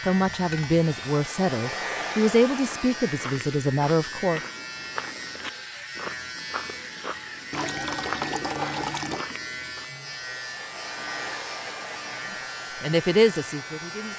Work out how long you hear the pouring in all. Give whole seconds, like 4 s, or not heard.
3 s.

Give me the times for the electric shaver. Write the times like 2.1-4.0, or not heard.
0.0-14.1.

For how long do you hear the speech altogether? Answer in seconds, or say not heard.
6 s.